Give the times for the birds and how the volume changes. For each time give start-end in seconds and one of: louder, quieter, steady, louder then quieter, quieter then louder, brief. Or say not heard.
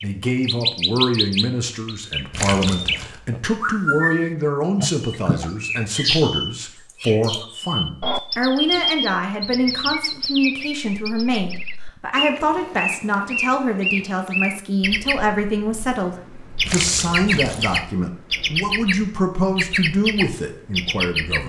0.0-21.4 steady.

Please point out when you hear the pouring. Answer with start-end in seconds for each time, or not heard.
2.3-3.1, 16.6-17.8.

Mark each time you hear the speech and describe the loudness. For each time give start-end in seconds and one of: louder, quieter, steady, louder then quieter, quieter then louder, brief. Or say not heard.
0.0-21.4 steady.